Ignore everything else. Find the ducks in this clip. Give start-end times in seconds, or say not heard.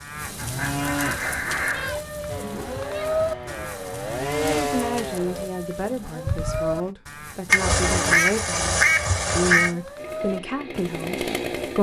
0.3-1.9, 7.5-9.8.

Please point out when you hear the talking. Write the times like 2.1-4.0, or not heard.
4.5-11.7.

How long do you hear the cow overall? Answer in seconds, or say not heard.
12 s.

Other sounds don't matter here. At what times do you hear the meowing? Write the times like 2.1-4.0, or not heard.
1.7-3.6, 6.2-6.9.